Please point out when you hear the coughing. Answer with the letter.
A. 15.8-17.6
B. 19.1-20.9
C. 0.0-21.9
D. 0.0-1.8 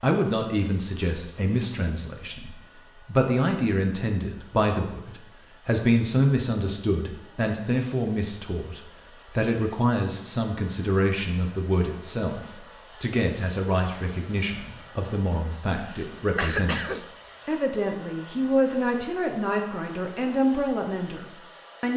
A.